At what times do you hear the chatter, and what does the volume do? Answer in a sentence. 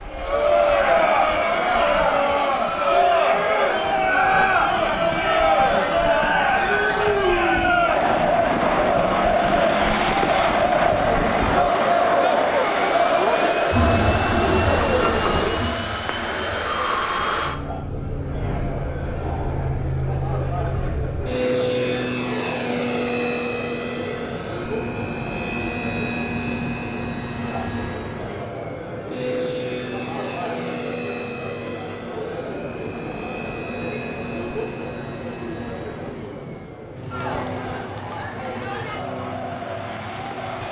The chatter can be heard from 0.1 to 40.6 s, getting quieter.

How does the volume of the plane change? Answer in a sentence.
The volume of the plane goes up, then down.